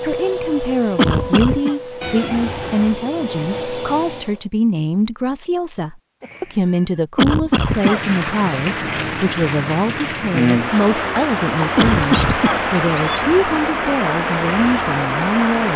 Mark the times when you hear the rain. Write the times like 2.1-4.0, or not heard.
7.5-15.7.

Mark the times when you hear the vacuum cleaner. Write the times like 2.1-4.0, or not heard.
0.0-4.5.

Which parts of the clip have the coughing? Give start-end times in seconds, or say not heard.
0.9-1.8, 7.2-8.0, 11.8-12.6.